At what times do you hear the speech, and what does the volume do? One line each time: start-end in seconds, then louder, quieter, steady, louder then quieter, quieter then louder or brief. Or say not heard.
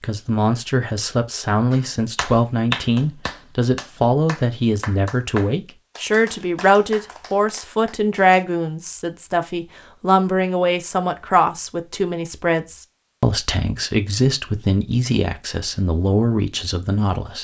0.0-17.3 steady.